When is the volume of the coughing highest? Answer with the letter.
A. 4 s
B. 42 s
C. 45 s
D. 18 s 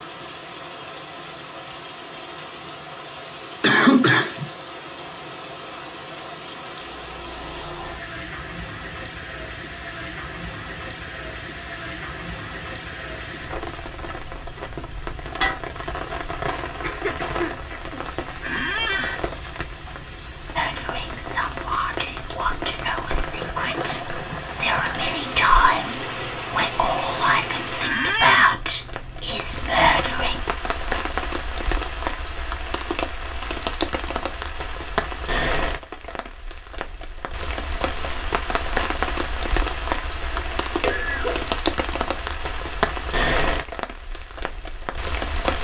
A.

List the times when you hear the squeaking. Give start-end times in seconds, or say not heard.
18.4-19.2, 27.8-28.6.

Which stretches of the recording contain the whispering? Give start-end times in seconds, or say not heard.
20.6-30.4.